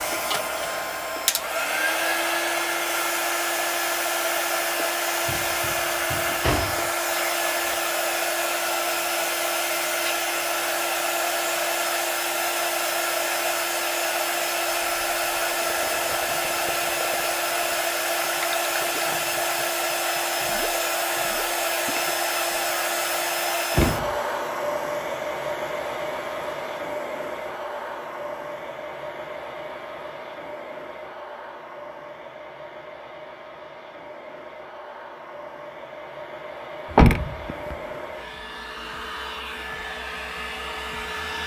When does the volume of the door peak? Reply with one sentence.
The volume of the door peaks at 37 seconds.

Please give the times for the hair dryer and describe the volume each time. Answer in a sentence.
The hair dryer can be heard from 0.0 to 41.4 s, getting quieter.